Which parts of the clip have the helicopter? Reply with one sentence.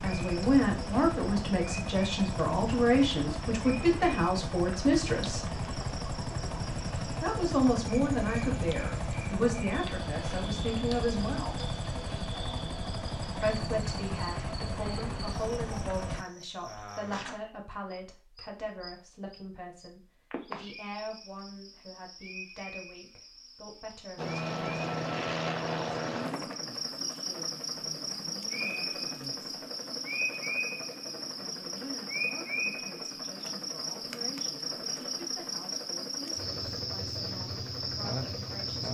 The helicopter can be heard from 0.0 to 16.2 s and from 24.1 to 38.9 s.